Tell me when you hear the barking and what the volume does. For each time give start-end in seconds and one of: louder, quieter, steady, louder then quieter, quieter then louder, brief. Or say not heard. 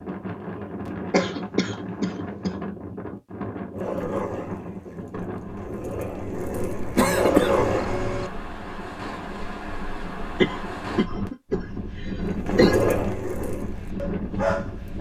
3.7-8.1 quieter then louder
12.3-14.9 brief.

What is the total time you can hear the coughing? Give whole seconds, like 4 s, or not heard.
5 s.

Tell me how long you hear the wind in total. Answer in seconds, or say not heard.
15 s.